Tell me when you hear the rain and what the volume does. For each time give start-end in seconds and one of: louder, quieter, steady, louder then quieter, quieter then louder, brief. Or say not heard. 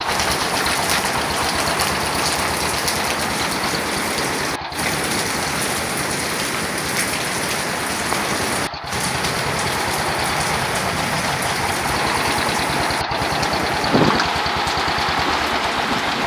0.0-16.2 steady.